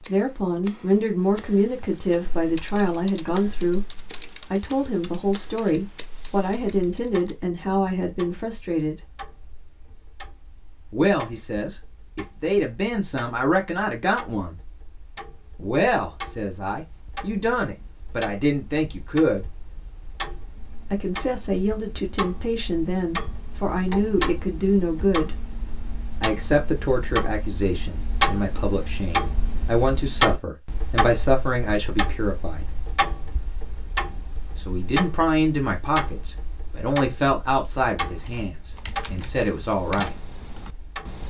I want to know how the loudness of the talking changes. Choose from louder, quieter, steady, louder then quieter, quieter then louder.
steady.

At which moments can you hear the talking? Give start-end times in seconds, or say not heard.
0.0-9.0, 10.9-14.6, 15.6-19.4, 20.9-25.4, 26.2-32.7, 34.5-40.1.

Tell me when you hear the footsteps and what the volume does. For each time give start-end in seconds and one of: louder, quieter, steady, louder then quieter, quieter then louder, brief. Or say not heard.
not heard.